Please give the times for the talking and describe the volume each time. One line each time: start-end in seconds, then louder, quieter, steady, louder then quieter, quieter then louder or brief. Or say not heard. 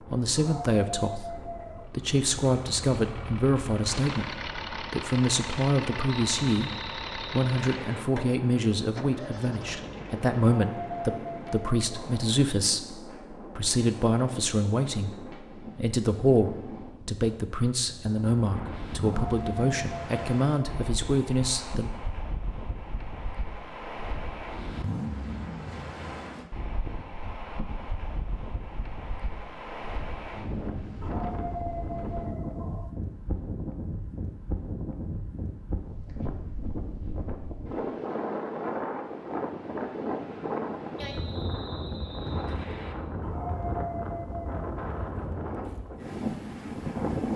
0.1-21.9 steady.